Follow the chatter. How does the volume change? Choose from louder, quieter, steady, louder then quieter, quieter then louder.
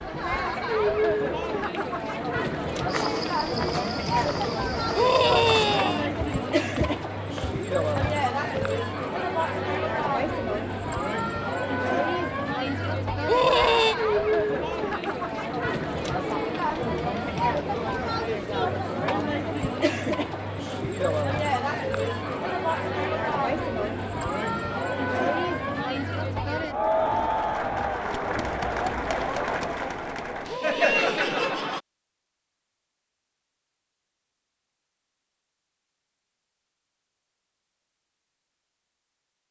steady.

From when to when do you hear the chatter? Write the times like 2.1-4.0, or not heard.
0.0-31.8.